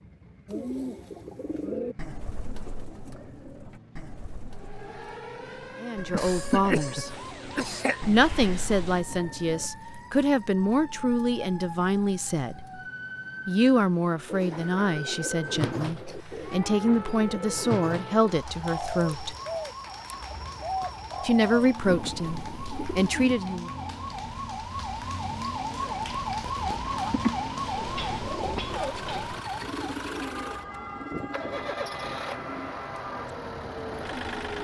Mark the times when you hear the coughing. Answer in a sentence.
The coughing can be heard from 6.1 to 8.0 s, from 15.6 to 16.4 s and from 26.7 to 27.4 s.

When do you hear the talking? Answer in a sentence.
You can hear the talking from 5.8 to 7.1 s, from 8.1 to 12.6 s, from 13.4 to 19.4 s and from 21.2 to 23.7 s.